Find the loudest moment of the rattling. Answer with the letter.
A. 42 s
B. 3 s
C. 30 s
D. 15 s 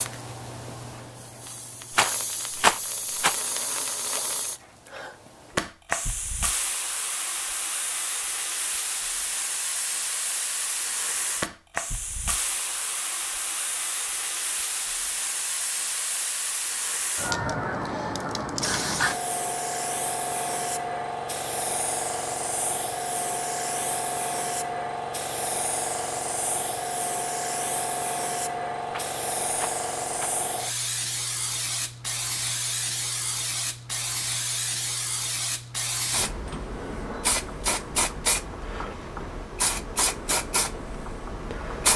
B.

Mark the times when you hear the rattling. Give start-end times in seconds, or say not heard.
1.9-3.4, 28.9-30.4.